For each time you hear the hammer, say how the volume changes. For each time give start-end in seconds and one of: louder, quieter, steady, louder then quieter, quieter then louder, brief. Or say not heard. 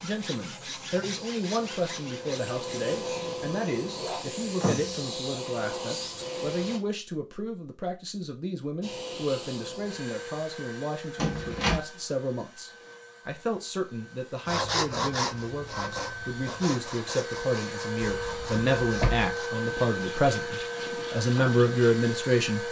not heard.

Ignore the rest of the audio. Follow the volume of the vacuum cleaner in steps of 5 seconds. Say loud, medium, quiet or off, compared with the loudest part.
loud, loud, medium, loud, loud.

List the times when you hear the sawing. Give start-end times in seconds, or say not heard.
0.0-3.0, 14.4-21.9.